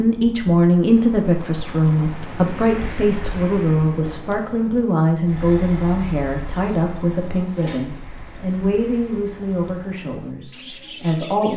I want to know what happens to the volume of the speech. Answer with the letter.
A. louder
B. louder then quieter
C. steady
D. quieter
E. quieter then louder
D.